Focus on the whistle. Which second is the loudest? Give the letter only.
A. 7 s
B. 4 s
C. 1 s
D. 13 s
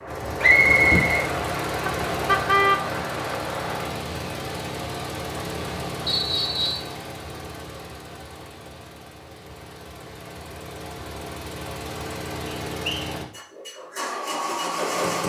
C.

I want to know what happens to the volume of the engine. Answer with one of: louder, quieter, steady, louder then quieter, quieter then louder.
quieter then louder.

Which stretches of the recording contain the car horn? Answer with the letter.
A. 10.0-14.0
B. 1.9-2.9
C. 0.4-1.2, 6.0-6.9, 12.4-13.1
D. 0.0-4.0
B.